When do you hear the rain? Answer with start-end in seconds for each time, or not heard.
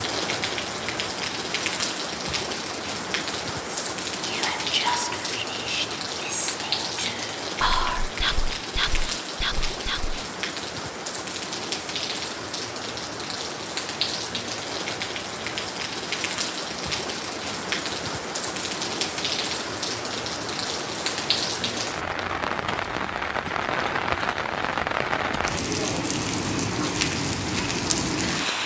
0.0-28.6.